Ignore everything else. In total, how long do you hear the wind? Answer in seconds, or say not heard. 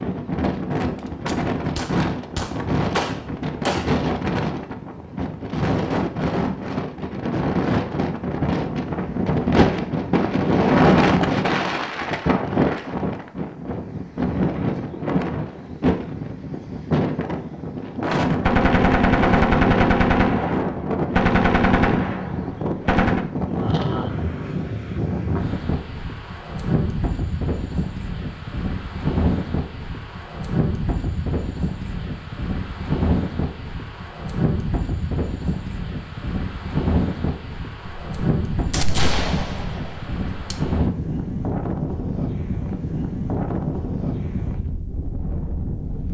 46 s.